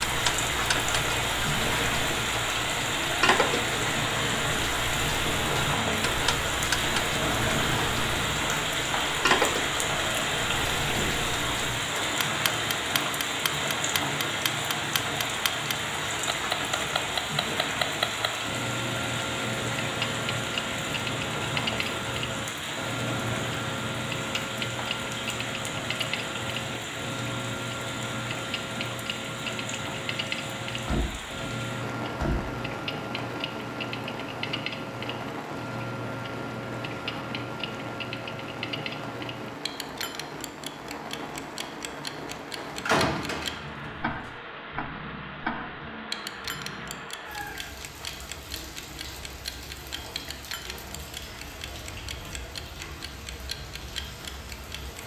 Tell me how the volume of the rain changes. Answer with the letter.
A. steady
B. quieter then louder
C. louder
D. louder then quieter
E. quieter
E.